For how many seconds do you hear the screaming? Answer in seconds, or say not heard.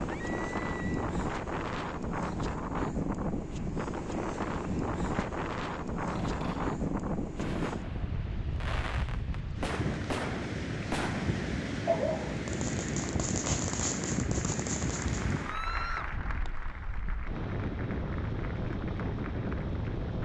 2 s.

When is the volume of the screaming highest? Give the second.
16 s.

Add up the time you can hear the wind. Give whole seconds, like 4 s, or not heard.
20 s.